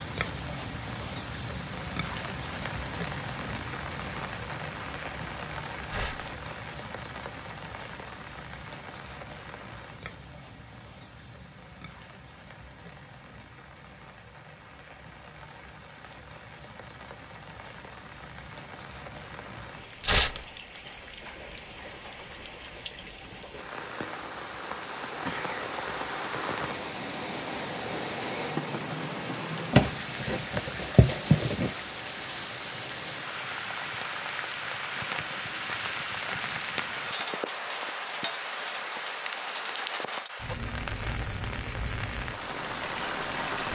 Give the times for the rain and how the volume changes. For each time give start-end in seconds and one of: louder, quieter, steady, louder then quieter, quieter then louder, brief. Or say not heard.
0.0-43.6 quieter then louder.